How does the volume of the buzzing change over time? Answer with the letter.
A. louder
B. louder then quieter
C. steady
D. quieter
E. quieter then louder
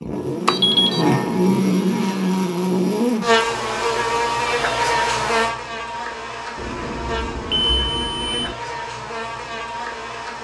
D.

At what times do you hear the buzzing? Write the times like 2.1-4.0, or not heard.
0.0-10.4.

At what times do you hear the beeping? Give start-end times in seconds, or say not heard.
0.5-1.1, 6.5-8.6.